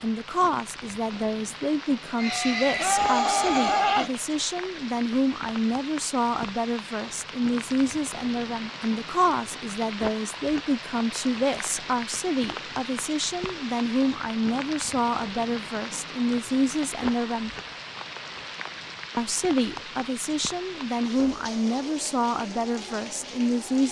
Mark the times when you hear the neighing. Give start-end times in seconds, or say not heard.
2.1-4.2.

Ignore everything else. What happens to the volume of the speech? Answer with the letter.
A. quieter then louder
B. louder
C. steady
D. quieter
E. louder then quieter
C.